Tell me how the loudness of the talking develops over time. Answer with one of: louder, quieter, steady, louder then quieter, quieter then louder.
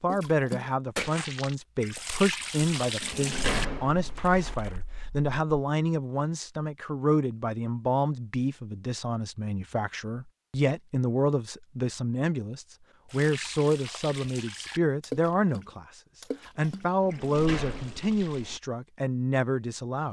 steady.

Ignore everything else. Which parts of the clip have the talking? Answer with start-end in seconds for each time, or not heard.
0.0-20.0.